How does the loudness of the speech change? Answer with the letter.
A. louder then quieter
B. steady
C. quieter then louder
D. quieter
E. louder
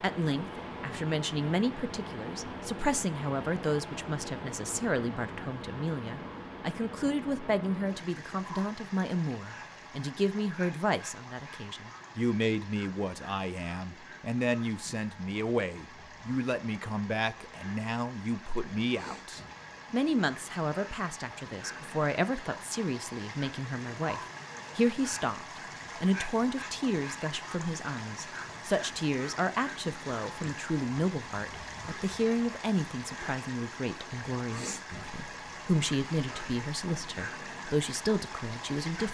B.